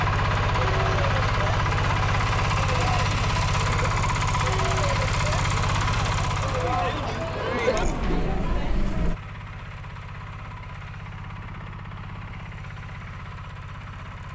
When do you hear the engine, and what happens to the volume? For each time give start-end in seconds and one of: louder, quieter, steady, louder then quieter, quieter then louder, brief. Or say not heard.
0.0-14.3 quieter.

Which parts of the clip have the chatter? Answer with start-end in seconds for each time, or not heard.
0.0-9.2.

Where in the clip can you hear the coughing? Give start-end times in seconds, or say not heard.
not heard.